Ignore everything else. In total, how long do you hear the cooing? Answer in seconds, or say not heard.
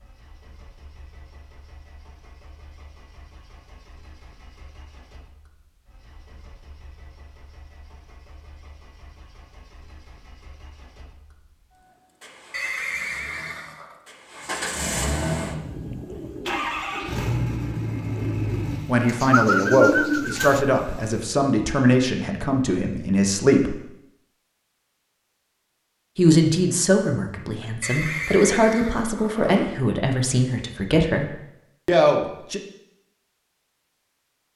5 s.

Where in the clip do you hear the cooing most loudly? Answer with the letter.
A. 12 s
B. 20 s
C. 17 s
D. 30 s
B.